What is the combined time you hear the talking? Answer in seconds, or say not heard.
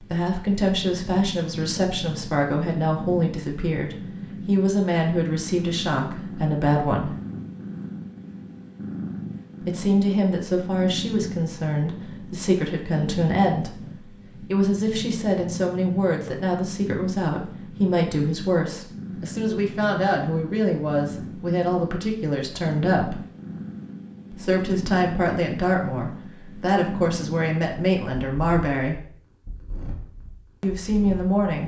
26 s.